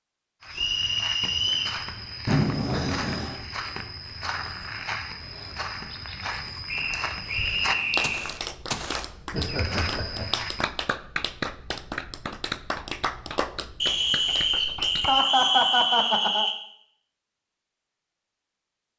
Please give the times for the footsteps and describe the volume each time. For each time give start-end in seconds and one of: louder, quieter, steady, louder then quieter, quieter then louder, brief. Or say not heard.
0.4-10.7 steady.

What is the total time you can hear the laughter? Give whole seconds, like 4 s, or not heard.
4 s.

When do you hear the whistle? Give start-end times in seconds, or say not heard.
0.5-1.8, 6.7-8.3, 13.8-16.6.